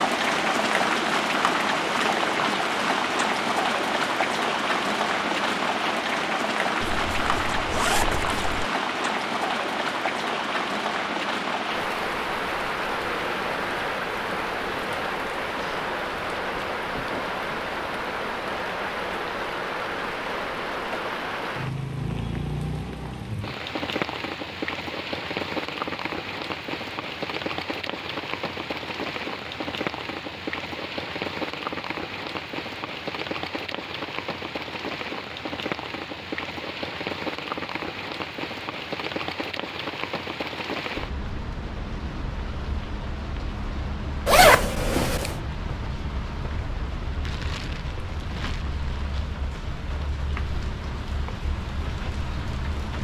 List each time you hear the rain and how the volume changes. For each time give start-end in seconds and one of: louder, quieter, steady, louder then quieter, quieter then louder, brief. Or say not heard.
0.0-52.9 quieter.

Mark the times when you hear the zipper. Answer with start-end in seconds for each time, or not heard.
6.8-8.7, 44.2-45.4.